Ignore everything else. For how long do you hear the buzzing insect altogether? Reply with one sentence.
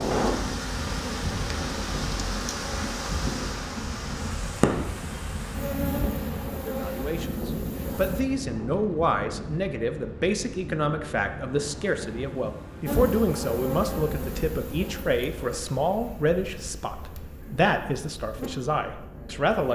The buzzing insect can be heard for 15 seconds in total.